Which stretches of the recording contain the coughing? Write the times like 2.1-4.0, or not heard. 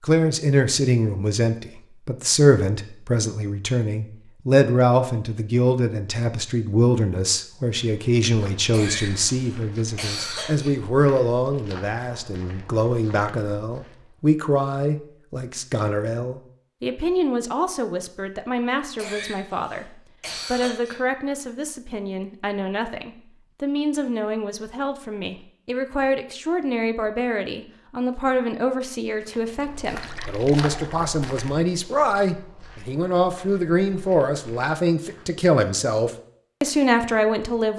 8.7-10.7, 18.9-21.0.